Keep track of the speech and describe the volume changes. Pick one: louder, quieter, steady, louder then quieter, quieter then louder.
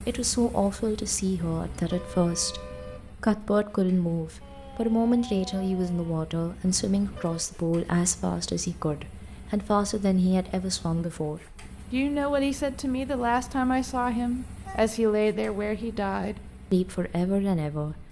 steady.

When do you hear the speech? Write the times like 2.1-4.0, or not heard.
0.1-18.0.